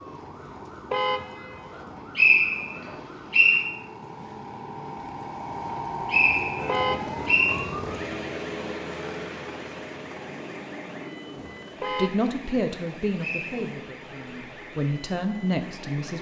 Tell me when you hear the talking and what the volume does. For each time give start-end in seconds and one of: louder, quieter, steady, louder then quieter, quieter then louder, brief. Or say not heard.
11.3-16.1 quieter then louder.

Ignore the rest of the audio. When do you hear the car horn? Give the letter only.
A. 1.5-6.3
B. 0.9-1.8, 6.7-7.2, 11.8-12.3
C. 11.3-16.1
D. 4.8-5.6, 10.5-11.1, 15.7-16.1
B.